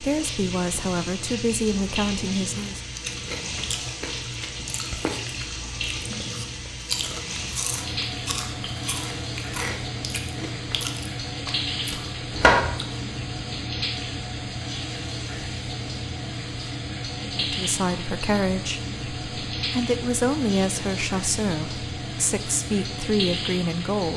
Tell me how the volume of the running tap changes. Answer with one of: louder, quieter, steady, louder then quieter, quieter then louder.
steady.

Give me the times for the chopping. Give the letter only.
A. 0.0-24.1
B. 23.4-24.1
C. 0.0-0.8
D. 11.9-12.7
D.